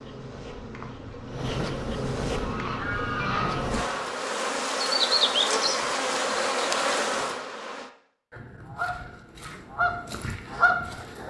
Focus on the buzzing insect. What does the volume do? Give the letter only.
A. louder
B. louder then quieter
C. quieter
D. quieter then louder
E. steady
A.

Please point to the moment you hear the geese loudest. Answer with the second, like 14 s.
11 s.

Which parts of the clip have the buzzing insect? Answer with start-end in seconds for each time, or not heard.
0.0-7.9.